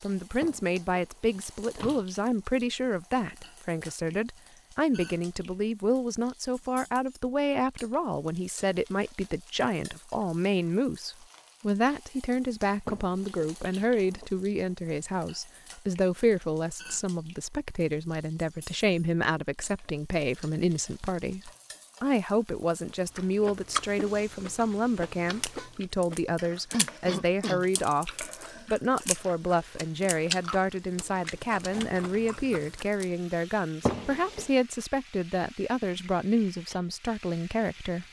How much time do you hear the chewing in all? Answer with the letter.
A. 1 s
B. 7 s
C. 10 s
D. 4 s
C.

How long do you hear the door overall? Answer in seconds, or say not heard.
4 s.